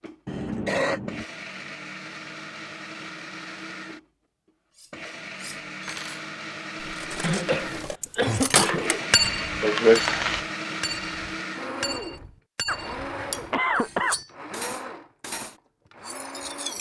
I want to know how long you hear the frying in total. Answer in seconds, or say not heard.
2 s.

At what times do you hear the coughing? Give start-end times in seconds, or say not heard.
0.2-1.2, 7.2-9.1, 12.7-14.2.